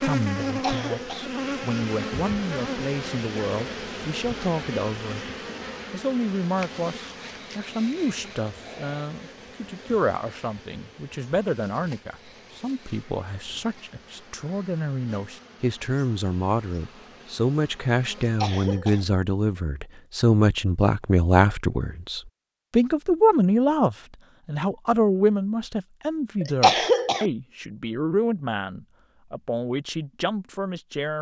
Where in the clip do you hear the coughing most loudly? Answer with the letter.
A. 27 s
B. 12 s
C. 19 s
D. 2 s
A.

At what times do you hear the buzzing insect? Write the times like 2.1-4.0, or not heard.
0.0-18.4.